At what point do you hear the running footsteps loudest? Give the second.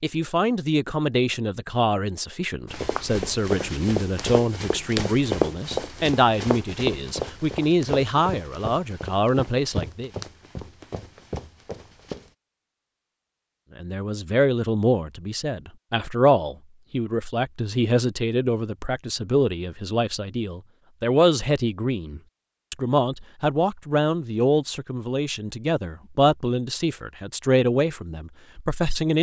5 s.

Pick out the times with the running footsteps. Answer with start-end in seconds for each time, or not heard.
2.7-12.3.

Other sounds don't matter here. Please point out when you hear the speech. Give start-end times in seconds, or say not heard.
0.0-10.1, 13.8-29.1.